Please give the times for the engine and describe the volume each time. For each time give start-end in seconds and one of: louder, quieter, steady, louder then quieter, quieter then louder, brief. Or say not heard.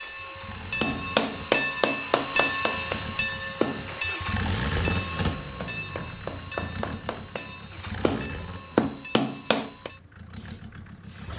0.0-11.3 louder then quieter.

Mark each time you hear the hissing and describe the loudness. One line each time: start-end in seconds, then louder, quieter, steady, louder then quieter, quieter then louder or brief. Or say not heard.
0.0-11.3 quieter.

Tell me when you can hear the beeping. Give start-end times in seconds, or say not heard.
not heard.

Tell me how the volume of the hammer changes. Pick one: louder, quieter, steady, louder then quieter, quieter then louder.
quieter then louder.